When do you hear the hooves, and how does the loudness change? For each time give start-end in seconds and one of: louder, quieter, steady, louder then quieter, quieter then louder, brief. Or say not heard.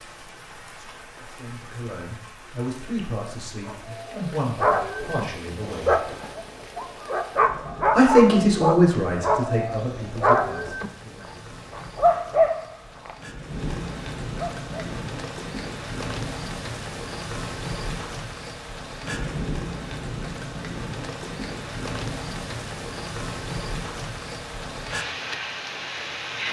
not heard.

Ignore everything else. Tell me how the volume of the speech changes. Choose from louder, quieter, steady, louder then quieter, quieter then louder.
louder then quieter.